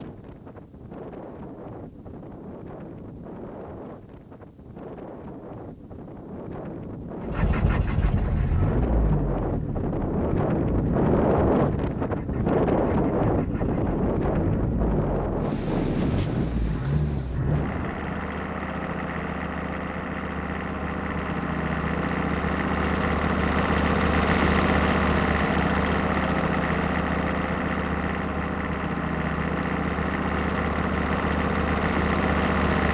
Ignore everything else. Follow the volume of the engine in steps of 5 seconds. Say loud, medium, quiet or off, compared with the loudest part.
off, medium, medium, medium, loud, loud, loud.